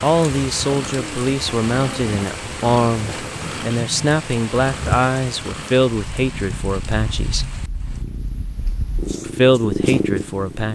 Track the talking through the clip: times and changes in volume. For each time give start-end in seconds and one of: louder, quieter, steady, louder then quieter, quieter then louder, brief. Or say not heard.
0.0-7.5 steady
9.2-10.6 brief.